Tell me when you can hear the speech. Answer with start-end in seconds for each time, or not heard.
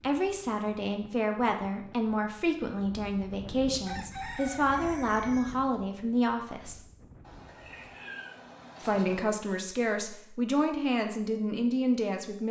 0.0-6.8, 8.8-12.4.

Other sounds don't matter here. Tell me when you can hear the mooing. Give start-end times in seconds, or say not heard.
not heard.